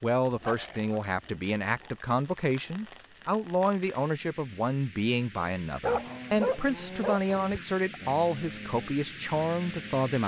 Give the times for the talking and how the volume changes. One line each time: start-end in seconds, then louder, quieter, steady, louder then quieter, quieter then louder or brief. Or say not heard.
0.0-10.2 steady.